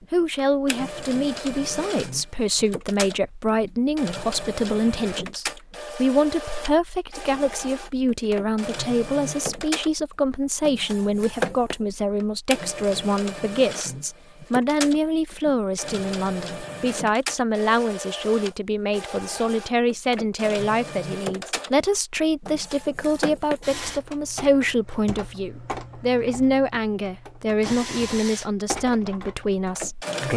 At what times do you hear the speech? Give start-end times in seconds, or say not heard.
0.1-30.3.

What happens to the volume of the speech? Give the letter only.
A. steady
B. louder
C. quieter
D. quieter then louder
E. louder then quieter
A.